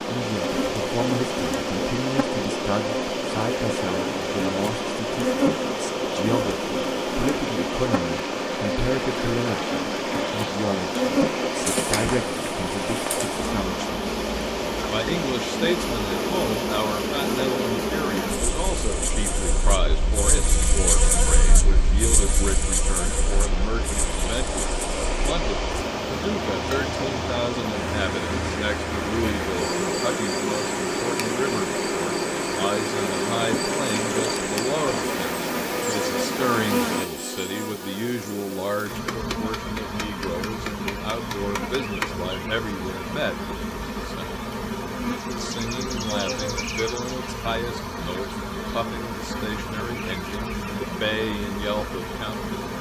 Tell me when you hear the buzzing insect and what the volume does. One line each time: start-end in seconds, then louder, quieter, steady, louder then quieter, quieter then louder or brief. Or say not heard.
0.0-52.7 steady.